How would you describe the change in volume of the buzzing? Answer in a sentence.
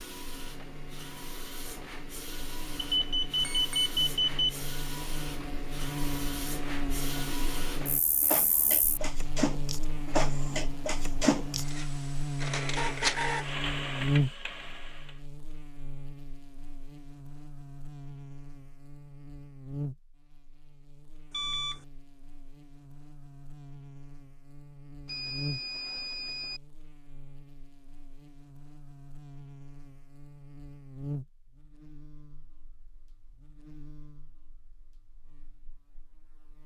The loudness of the buzzing goes up, then down.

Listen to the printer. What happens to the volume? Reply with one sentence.
The loudness of the printer goes up.